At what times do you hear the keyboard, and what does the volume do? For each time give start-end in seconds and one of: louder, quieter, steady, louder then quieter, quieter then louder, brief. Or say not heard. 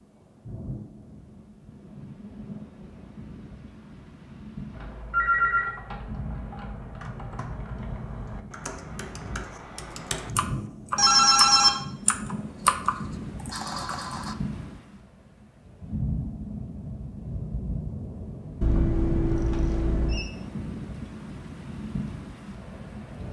4.7-14.3 louder.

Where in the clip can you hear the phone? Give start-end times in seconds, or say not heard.
5.1-5.7, 10.9-11.7, 18.6-20.3.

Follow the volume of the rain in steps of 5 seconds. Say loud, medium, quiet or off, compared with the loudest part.
medium, medium, loud, loud, loud.